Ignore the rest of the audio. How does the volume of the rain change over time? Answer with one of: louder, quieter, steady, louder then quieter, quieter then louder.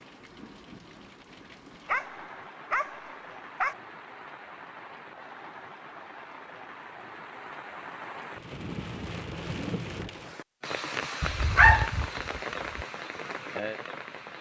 louder.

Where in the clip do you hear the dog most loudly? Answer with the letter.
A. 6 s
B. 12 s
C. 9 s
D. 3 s
B.